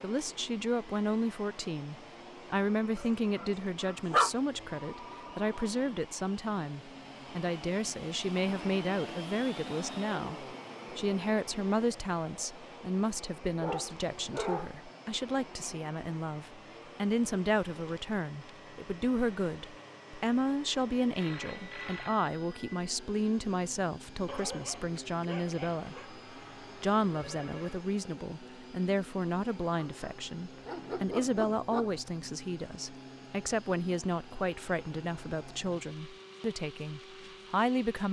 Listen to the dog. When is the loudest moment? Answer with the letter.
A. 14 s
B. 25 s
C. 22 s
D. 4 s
D.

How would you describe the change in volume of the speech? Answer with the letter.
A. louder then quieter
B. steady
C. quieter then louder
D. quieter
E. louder
B.